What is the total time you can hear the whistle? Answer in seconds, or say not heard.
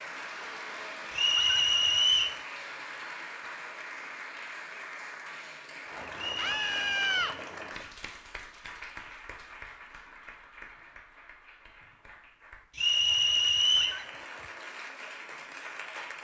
4 s.